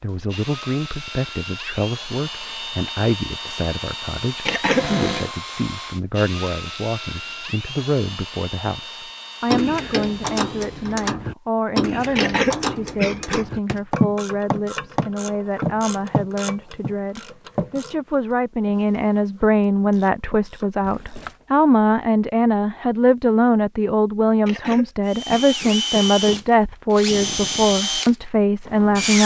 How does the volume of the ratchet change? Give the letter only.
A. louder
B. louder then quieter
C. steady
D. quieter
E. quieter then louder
D.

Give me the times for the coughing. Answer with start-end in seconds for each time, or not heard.
4.5-4.9, 12.2-13.4, 24.4-26.4.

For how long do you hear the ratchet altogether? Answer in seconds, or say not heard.
12 s.